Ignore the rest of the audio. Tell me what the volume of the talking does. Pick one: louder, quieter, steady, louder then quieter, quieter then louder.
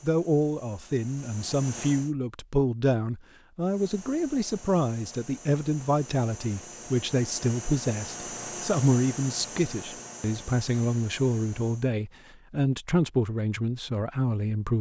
steady.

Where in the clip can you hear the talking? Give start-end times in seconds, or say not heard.
0.0-14.7.